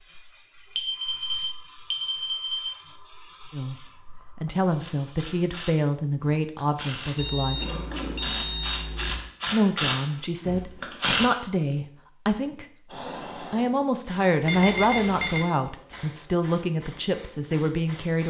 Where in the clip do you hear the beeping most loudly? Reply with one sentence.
The loudest moment of the beeping is at 15 seconds.